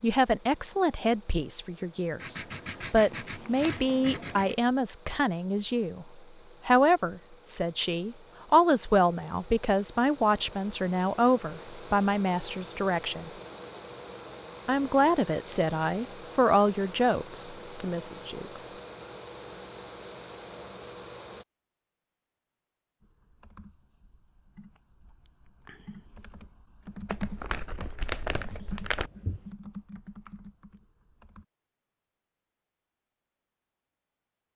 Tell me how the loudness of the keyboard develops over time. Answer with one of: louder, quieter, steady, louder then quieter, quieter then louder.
louder then quieter.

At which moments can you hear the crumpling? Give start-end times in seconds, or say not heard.
2.9-4.1, 27.1-29.1.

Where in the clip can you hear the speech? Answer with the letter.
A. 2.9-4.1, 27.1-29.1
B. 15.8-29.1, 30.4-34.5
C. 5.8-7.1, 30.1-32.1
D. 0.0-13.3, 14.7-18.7
D.